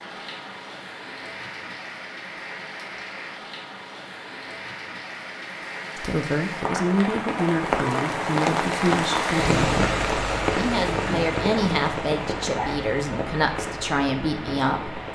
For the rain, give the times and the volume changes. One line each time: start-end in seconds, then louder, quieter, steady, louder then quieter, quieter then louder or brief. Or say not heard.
0.0-15.0 louder then quieter.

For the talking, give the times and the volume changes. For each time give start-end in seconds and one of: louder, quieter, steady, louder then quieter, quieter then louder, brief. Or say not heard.
6.0-15.0 steady.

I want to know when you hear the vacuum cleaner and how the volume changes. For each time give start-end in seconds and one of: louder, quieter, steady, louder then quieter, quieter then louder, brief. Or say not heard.
not heard.